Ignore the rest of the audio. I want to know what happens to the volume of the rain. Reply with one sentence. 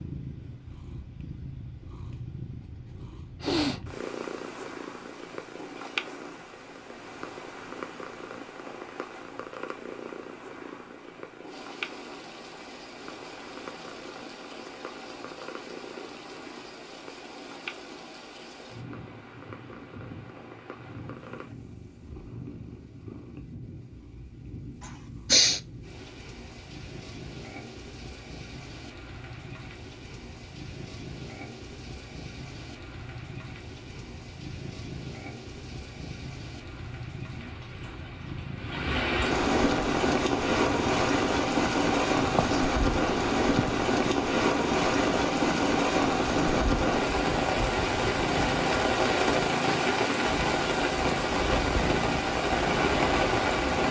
The loudness of the rain goes up.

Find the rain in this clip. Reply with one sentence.
You can hear the rain from 11.4 to 53.8 s.